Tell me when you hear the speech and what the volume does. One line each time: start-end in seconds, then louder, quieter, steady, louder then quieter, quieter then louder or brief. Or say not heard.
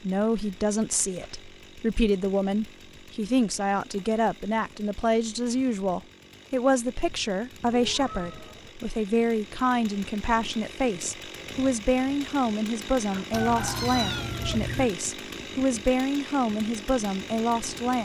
0.0-17.9 steady.